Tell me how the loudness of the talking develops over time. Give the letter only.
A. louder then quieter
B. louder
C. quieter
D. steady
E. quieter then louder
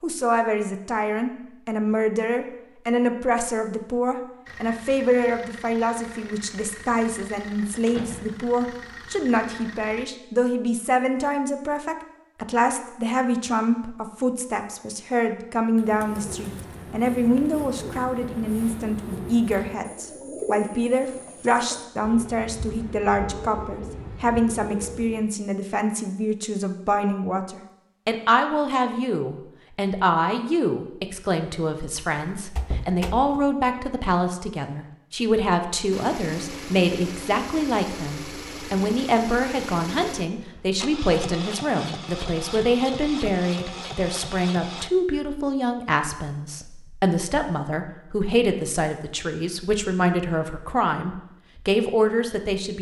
D.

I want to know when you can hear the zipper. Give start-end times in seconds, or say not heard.
not heard.